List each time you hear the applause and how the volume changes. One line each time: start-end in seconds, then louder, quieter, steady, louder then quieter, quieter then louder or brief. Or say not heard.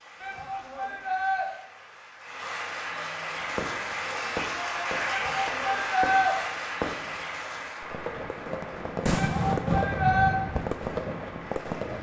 0.0-11.9 louder then quieter.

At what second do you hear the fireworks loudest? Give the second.
10 s.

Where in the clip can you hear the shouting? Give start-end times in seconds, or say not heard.
0.2-1.4, 5.0-6.3, 9.2-10.3.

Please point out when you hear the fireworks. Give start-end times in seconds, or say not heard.
3.4-11.9.